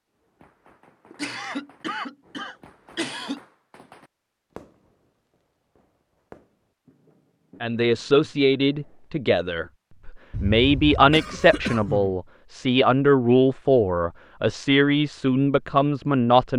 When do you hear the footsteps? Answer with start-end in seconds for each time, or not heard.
not heard.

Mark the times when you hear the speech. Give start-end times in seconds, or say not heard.
7.6-16.5.